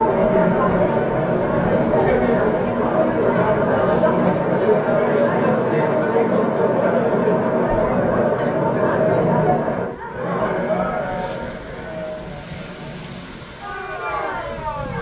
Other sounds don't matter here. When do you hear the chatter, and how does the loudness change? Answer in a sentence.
The chatter can be heard from 0.0 to 14.9 s, getting quieter.